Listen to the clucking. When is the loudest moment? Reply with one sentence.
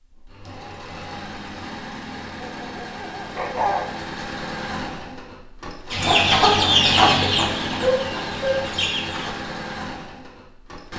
The loudest moment of the clucking is at 7 seconds.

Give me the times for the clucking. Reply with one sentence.
You can hear the clucking from 5.9 to 9.3 s.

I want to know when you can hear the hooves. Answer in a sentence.
The hooves can't be heard in this clip.